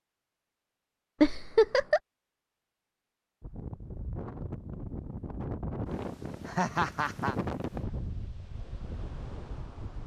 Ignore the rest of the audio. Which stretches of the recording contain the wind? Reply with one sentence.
You can hear the wind from 3.4 to 10.0 s.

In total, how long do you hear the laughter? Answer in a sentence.
The laughter can be heard for 2 seconds in total.